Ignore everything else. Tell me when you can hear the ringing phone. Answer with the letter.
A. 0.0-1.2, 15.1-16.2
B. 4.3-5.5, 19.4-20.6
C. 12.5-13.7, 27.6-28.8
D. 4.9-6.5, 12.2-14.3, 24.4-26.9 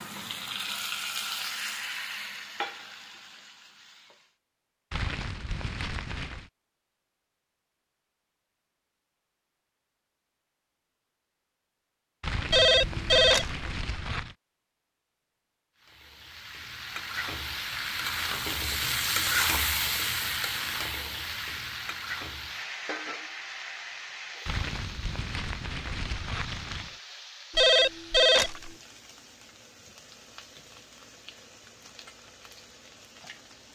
C.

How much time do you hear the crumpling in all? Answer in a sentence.
The crumpling can be heard for 6 seconds in total.